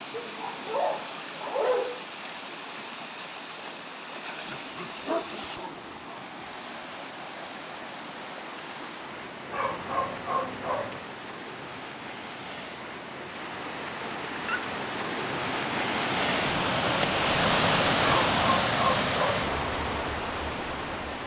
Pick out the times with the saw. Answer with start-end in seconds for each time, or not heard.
not heard.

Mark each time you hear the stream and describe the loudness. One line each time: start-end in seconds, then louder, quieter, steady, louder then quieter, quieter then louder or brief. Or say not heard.
0.0-21.2 louder.